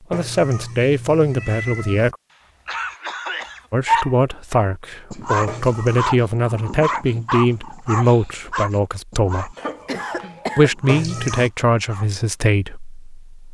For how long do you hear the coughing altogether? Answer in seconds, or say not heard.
3 s.